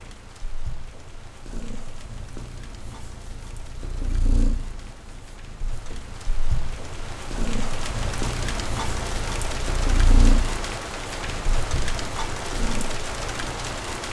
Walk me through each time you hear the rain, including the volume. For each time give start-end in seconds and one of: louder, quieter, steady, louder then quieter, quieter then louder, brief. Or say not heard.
0.0-14.0 louder.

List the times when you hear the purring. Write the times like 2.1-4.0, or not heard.
0.0-14.0.